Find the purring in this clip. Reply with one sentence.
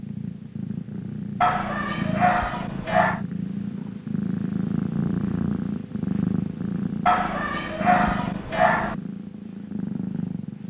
The purring can be heard from 0.0 to 10.6 s.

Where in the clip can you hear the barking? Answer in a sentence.
The barking can be heard from 1.4 to 3.2 s and from 7.0 to 8.9 s.